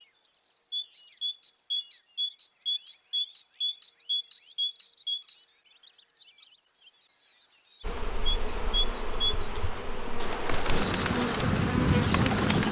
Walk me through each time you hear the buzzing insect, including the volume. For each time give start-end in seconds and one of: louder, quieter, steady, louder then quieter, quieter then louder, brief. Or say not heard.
7.8-12.6 louder.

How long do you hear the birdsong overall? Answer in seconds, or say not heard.
11 s.